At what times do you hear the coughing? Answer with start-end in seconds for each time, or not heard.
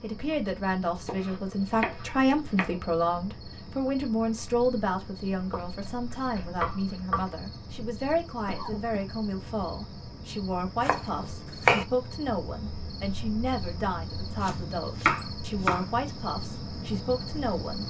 8.4-9.0.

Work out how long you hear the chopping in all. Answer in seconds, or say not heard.
6 s.